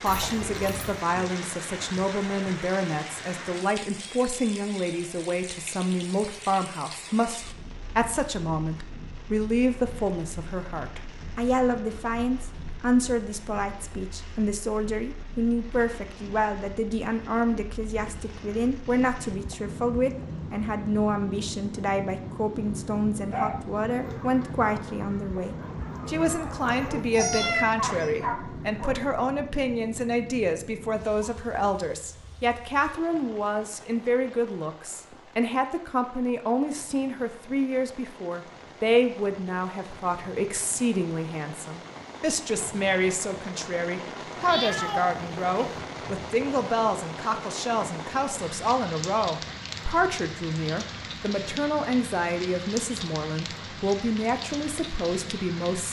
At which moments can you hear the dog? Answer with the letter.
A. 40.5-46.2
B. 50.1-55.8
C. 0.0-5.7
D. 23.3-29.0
D.